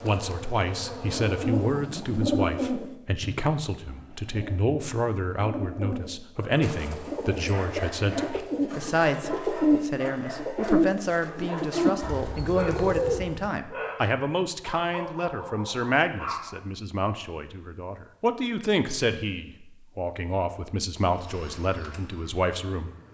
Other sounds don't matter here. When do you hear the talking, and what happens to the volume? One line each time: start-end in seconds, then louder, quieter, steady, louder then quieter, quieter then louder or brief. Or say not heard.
0.0-23.1 steady.